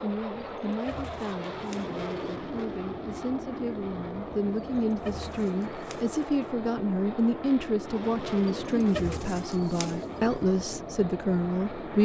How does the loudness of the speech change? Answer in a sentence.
The volume of the speech goes up.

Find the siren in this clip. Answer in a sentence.
You can't hear the siren here.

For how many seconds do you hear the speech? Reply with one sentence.
The speech can be heard for 12 seconds in total.